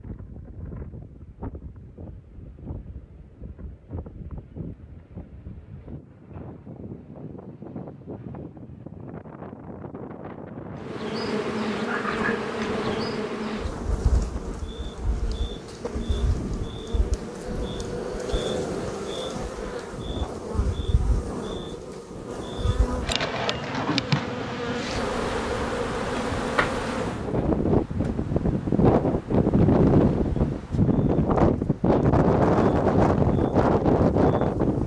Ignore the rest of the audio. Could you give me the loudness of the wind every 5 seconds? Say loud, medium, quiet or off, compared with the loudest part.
quiet, quiet, quiet, quiet, quiet, loud, loud.